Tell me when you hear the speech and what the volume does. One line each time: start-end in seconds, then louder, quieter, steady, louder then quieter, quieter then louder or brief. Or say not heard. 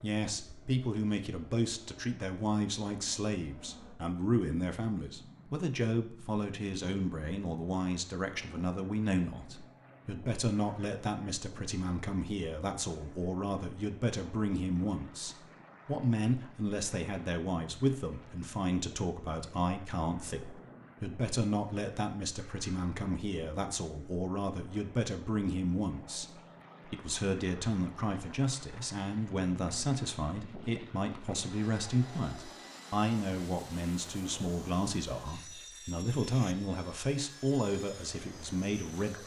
0.0-39.2 steady.